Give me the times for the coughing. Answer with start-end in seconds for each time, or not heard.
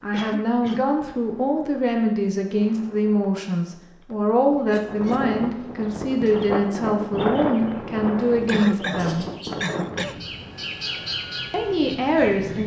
0.1-0.8, 4.7-5.3, 8.4-10.2.